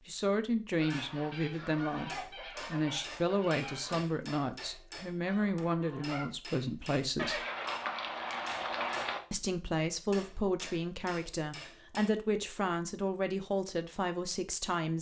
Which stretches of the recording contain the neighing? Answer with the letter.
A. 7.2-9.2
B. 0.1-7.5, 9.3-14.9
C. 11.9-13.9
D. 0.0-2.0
A.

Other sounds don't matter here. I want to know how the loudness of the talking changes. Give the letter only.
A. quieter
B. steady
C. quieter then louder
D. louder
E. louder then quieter
B.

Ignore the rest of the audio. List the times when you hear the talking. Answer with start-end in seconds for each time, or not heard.
0.1-7.5, 9.3-14.9.